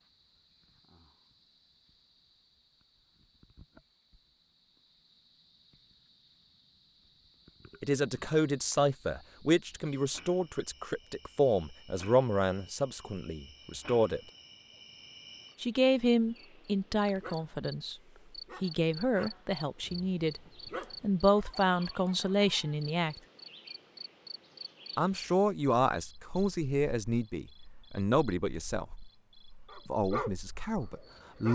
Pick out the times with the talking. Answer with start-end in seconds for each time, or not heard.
7.8-14.2, 15.6-17.9, 18.6-20.4, 21.0-23.1, 24.9-28.9, 29.9-31.5.